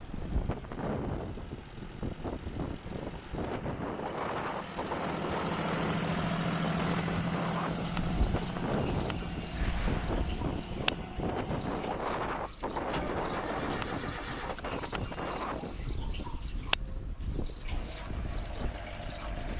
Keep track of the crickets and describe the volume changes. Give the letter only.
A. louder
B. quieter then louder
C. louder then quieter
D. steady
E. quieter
D.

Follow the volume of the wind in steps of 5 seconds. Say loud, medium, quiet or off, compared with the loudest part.
loud, loud, loud, medium.